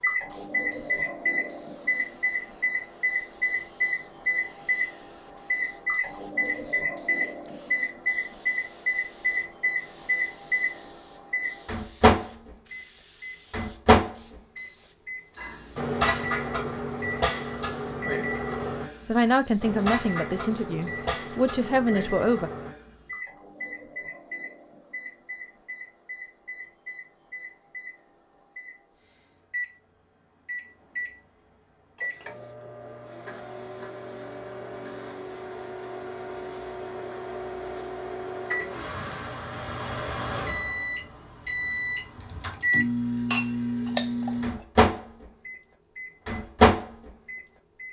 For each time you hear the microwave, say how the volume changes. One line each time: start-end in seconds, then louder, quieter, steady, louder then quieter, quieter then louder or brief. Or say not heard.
0.0-47.8 quieter then louder.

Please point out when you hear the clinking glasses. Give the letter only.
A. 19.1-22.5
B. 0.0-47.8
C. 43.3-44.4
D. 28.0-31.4
C.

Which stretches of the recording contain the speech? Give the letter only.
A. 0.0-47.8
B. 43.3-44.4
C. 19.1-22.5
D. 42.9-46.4
C.